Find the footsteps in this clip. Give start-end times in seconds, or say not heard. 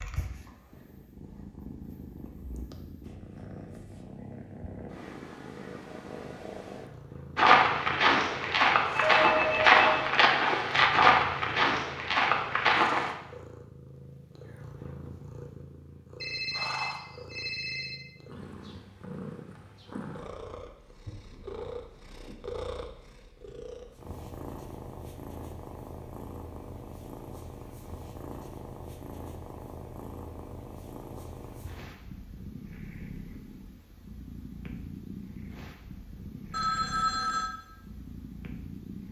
7.3-13.1.